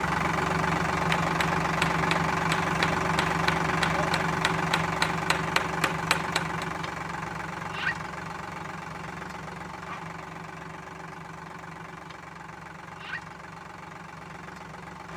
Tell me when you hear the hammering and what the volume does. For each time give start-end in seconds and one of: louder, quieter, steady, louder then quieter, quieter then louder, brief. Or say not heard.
1.1-6.7 steady.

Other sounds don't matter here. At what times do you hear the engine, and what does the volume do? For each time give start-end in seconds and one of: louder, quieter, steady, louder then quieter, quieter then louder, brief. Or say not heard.
0.0-15.1 quieter.